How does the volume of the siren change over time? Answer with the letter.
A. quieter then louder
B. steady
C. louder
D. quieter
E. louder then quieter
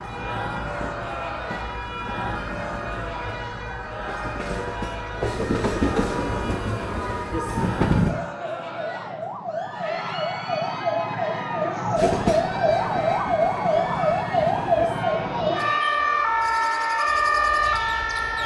C.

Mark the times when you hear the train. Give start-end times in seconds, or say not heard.
0.0-8.2, 11.9-18.4.